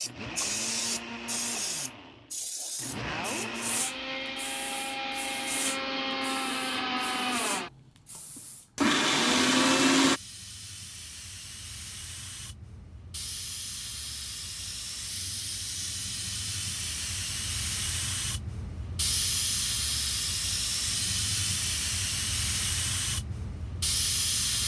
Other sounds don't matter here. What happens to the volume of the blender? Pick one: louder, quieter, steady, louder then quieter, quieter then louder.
louder.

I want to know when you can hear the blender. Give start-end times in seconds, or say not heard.
0.0-10.2.